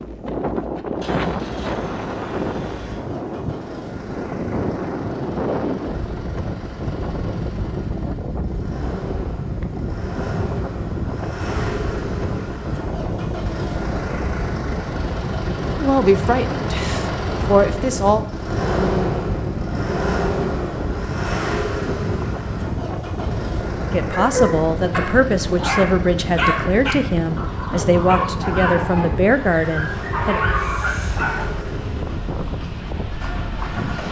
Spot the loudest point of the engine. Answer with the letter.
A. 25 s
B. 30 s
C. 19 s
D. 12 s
C.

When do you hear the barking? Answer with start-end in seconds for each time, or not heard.
24.1-31.5.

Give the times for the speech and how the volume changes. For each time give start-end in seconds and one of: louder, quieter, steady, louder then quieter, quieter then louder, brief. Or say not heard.
15.8-18.2 brief
23.9-30.4 steady.